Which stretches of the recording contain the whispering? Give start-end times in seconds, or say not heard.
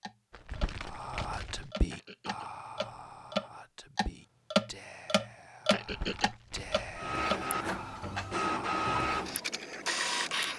0.8-9.3.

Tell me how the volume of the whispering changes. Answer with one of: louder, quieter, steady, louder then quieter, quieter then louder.
quieter then louder.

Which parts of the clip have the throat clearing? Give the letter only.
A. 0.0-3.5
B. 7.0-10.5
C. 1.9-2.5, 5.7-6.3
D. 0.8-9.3
C.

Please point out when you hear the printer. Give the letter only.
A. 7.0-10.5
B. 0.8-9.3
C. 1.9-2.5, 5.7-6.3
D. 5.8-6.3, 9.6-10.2
A.